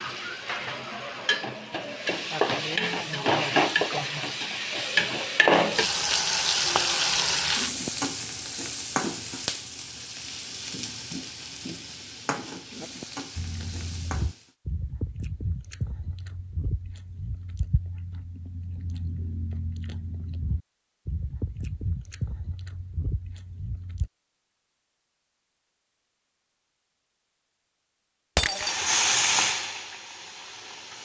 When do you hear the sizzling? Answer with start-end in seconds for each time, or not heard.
0.0-14.5, 28.4-31.0.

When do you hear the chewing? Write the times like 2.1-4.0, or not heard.
13.3-24.1.